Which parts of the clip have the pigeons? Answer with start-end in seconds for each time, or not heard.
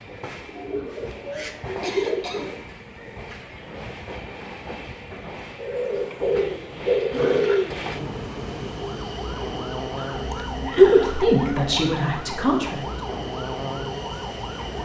0.5-2.6, 5.5-7.8, 10.1-11.9.